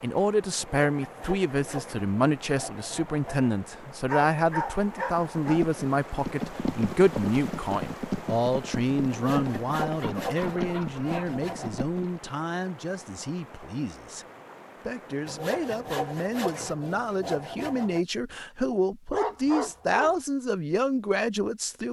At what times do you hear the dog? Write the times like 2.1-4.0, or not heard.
4.0-5.7, 10.0-11.3, 19.1-20.1.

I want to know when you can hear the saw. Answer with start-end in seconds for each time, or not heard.
0.6-3.5, 9.1-11.8, 15.2-18.1.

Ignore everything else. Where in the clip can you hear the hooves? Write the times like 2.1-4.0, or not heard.
5.4-12.3.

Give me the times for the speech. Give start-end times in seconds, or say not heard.
0.0-14.2, 14.8-21.8.